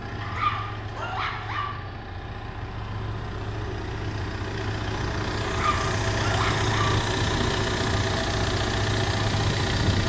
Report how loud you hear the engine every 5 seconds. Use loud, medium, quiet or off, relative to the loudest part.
medium, loud.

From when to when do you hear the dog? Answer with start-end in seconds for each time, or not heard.
0.2-1.8, 5.5-7.0.